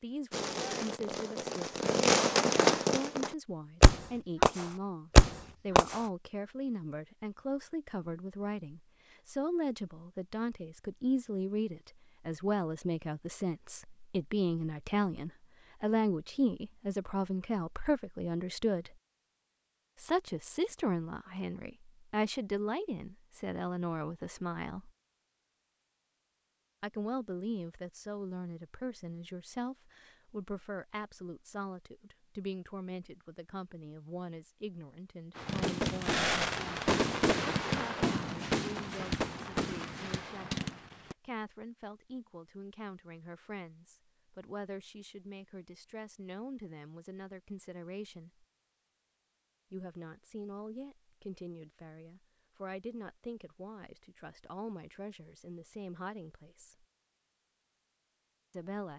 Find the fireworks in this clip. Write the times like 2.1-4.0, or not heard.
0.3-6.0, 35.4-41.1.